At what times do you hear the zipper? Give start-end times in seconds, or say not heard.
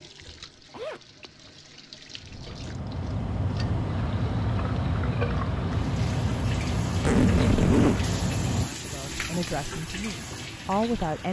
0.2-1.6, 7.0-8.0.